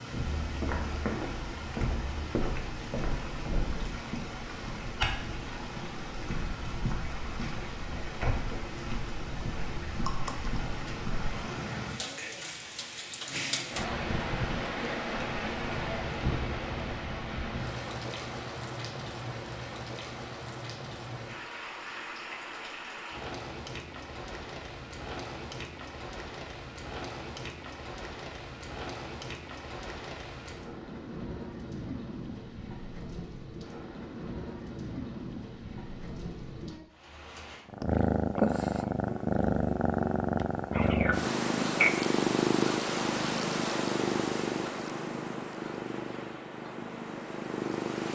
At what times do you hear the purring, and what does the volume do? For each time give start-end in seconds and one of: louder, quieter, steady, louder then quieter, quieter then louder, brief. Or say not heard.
37.6-48.0 quieter.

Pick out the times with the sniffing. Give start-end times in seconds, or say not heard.
40.7-42.0.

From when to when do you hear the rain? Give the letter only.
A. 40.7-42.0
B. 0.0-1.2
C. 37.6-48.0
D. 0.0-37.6
D.